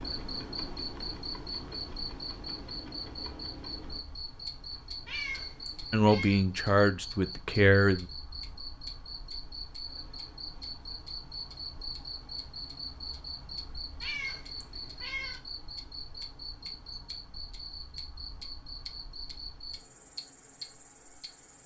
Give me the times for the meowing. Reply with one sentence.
The meowing can be heard from 5.0 to 6.4 s and from 14.0 to 15.4 s.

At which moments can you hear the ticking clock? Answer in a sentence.
You can hear the ticking clock from 0.0 to 21.6 s.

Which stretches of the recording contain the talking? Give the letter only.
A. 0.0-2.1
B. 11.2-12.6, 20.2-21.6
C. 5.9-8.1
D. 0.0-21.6
C.